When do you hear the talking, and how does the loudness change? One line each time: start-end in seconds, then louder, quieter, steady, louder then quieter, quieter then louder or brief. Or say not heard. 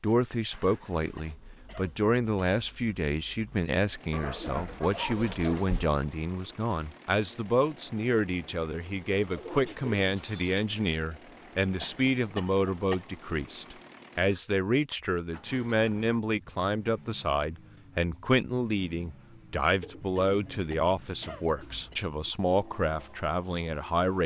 0.0-24.2 steady.